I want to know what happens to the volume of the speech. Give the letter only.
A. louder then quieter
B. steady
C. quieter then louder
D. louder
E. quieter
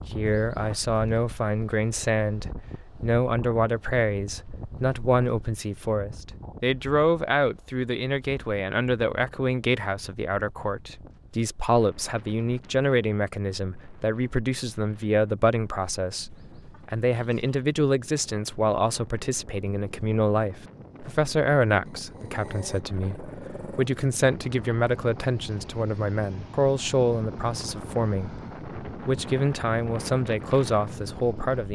B.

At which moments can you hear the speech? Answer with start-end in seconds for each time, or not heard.
0.1-31.7.